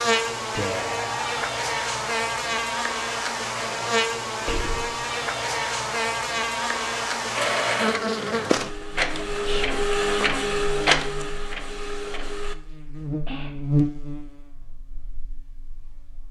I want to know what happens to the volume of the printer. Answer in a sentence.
The loudness of the printer goes up, then down.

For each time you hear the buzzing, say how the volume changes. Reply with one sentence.
The buzzing can be heard from 0.0 to 16.2 s, getting quieter then louder.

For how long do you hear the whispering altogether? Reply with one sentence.
The whispering can be heard for 2 seconds in total.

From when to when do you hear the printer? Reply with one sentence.
You can hear the printer from 7.3 to 12.6 s.